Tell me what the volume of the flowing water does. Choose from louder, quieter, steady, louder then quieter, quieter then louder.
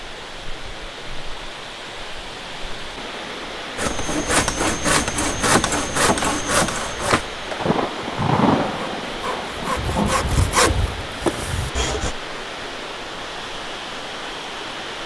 steady.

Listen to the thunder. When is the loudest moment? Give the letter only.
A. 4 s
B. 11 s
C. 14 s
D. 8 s
D.